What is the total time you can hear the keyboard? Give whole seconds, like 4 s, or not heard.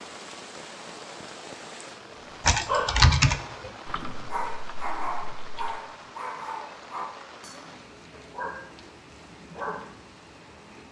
3 s.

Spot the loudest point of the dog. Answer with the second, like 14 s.
3 s.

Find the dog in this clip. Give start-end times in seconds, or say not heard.
2.5-9.9.